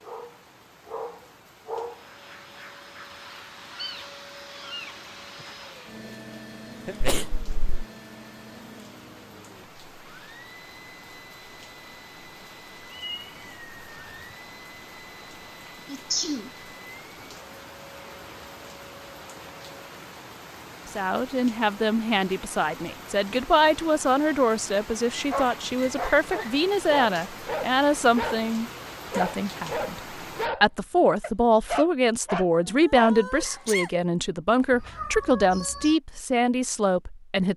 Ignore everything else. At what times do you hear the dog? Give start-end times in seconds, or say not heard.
0.0-2.0, 25.1-28.4, 29.1-33.8.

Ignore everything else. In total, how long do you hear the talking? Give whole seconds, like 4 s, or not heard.
16 s.